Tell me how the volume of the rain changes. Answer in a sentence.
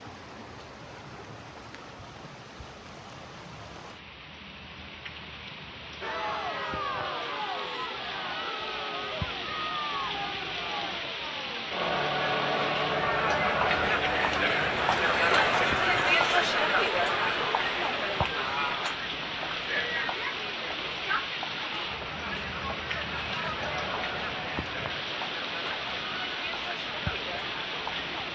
The volume of the rain goes up.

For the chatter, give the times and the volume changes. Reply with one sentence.
You can hear the chatter from 6.0 to 28.2 s, getting louder then quieter.